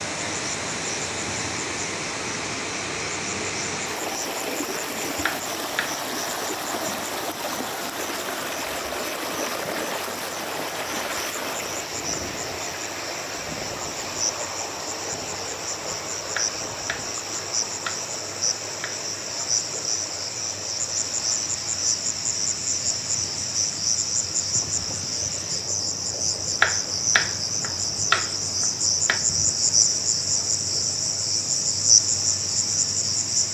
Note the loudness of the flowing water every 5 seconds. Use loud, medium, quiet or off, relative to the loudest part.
loud, loud, loud, medium, medium, quiet, quiet.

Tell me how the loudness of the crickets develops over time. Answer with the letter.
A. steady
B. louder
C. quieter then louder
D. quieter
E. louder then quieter
B.